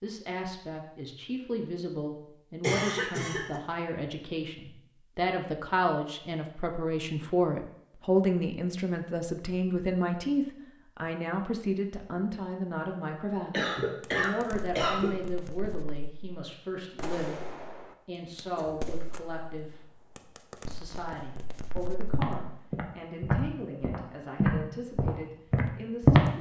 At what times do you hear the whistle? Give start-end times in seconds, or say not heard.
not heard.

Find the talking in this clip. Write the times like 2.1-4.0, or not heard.
0.0-26.3.